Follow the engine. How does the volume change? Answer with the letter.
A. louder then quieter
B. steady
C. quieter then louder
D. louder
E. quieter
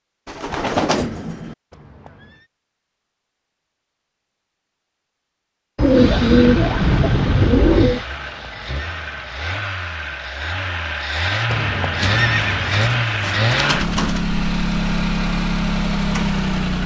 D.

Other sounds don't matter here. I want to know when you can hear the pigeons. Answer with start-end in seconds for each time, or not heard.
0.2-1.6, 5.8-8.1, 12.0-14.2.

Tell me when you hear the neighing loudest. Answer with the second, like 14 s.
12 s.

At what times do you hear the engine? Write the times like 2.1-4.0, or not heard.
5.8-16.8.